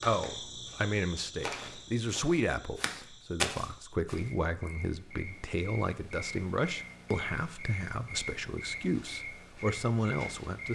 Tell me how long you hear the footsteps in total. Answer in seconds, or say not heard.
6 s.